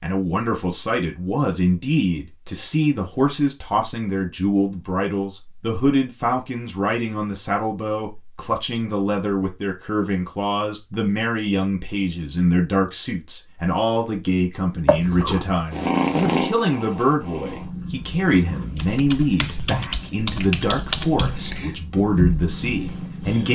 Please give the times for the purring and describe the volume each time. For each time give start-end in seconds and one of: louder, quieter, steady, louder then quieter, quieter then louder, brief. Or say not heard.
14.8-23.4 quieter.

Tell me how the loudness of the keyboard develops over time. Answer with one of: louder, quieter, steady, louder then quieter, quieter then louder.
quieter then louder.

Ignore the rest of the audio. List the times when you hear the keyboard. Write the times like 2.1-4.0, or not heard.
18.7-23.4.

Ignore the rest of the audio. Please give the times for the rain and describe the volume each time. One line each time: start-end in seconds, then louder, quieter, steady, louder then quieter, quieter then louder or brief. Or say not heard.
not heard.